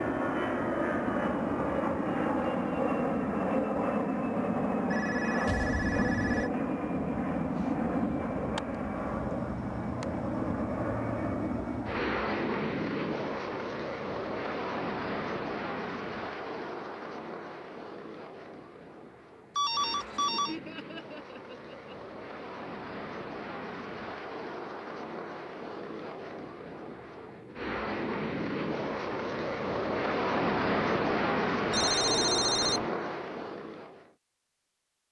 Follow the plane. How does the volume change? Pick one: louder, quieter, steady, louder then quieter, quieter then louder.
quieter then louder.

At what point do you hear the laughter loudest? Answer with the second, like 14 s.
21 s.